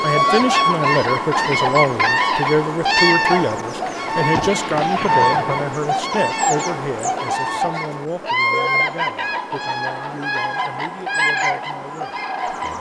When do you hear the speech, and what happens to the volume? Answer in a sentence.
You can hear the speech from 0.0 to 12.7 s, getting quieter.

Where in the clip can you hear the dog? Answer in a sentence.
You can't hear the dog here.